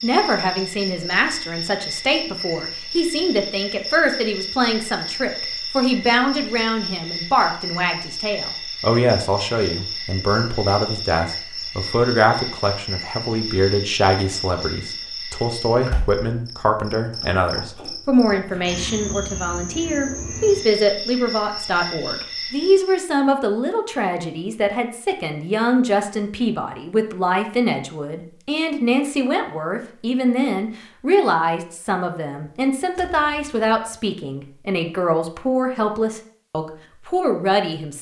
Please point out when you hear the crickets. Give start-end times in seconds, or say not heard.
0.0-23.1.